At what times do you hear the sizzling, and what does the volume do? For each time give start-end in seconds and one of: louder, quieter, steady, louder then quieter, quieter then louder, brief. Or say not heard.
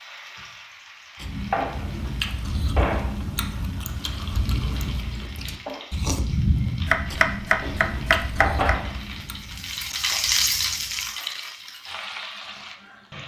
0.0-13.2 quieter then louder.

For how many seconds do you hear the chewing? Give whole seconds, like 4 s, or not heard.
10 s.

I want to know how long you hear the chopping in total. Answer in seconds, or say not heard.
2 s.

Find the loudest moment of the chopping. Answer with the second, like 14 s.
7 s.